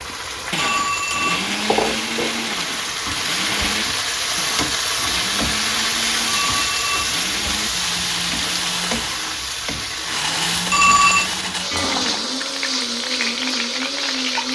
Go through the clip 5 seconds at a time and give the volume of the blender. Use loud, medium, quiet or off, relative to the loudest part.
loud, medium, loud.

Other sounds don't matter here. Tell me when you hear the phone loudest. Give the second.
11 s.